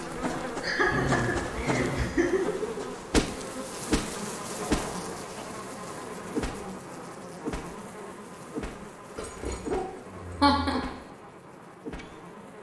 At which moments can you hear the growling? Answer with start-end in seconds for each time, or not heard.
0.8-2.3, 4.6-5.2, 9.2-10.8.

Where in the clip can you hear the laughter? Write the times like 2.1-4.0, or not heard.
0.3-2.9, 10.4-10.8.